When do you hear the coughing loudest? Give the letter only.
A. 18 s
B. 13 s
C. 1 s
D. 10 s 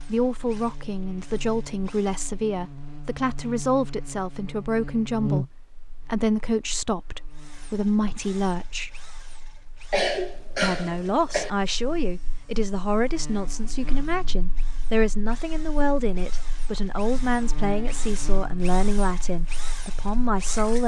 D.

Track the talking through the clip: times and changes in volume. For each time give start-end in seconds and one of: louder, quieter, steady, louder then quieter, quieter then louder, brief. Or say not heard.
0.0-9.1 steady
10.6-20.8 steady.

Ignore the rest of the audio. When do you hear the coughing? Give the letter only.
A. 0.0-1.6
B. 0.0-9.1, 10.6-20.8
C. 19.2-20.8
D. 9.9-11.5
D.